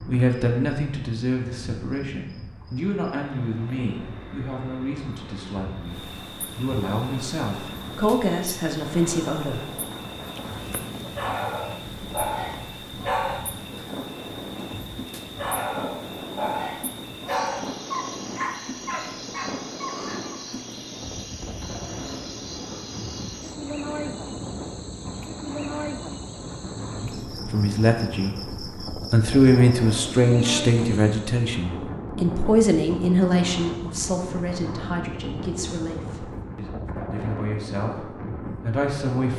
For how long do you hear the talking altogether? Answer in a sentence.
You can hear the talking for 22 seconds altogether.